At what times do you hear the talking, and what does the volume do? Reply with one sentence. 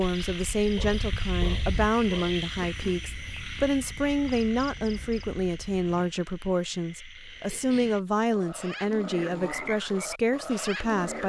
You can hear the talking from 0.0 to 11.2 s, at a steady volume.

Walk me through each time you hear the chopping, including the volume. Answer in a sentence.
The chopping can't be heard in this clip.